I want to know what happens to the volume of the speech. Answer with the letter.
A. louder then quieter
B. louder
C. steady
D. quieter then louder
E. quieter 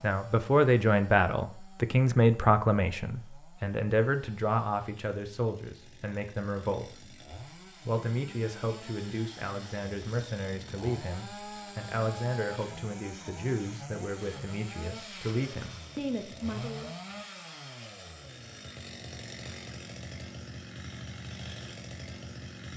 E.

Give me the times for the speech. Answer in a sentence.
You can hear the speech from 0.0 to 16.9 s.